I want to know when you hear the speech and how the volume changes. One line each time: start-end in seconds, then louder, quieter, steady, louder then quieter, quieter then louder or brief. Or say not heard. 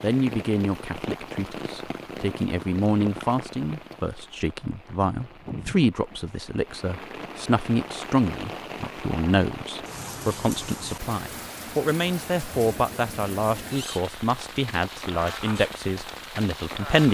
0.0-17.1 steady.